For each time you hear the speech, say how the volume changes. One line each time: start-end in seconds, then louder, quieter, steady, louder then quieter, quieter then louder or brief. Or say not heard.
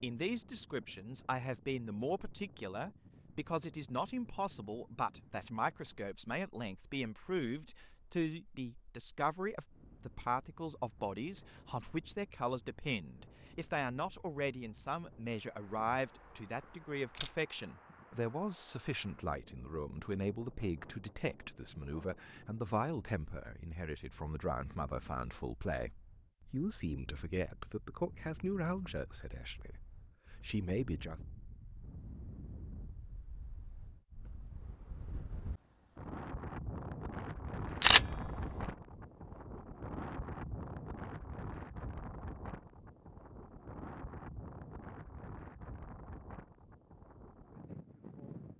0.0-31.2 steady.